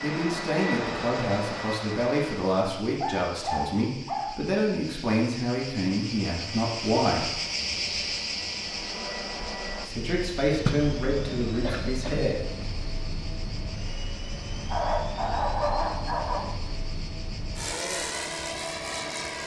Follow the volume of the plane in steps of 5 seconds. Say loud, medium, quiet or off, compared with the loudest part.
loud, medium, medium, loud.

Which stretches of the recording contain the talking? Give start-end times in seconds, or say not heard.
0.0-7.4, 9.8-12.4.